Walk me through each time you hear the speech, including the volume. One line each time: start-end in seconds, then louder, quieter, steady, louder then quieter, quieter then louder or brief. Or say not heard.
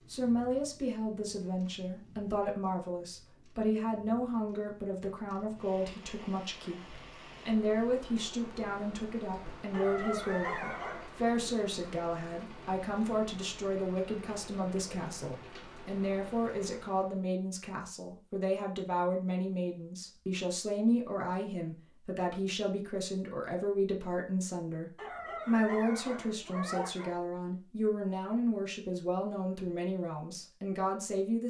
0.1-31.4 steady.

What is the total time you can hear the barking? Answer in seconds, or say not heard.
4 s.